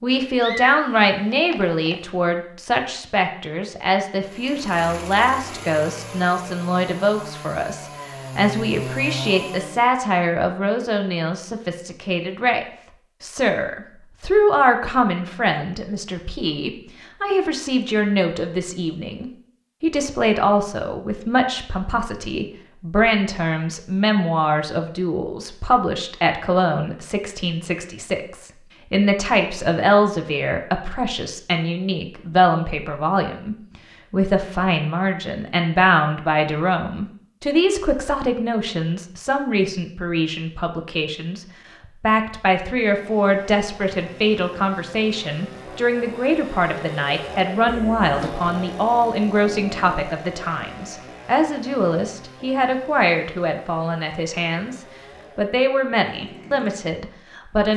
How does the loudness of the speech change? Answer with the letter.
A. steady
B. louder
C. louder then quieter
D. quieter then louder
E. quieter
A.